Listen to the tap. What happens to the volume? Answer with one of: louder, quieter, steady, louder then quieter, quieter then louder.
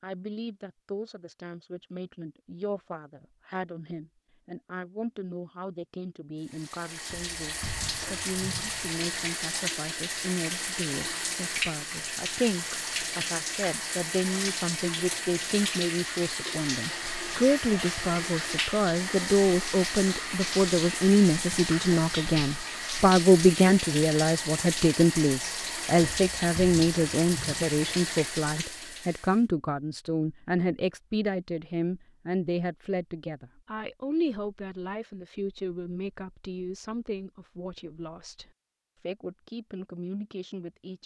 steady.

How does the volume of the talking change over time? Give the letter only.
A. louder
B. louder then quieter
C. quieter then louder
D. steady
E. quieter
B.